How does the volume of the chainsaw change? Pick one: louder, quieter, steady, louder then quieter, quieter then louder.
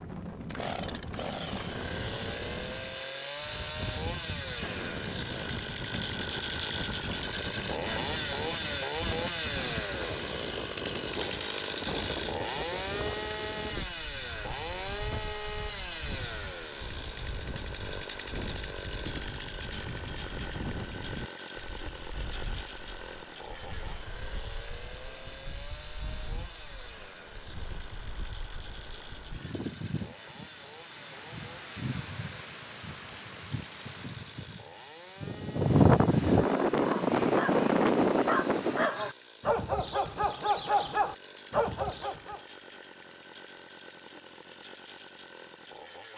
quieter.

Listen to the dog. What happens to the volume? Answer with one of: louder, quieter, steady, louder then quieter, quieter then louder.
louder.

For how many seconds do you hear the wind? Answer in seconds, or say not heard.
39 s.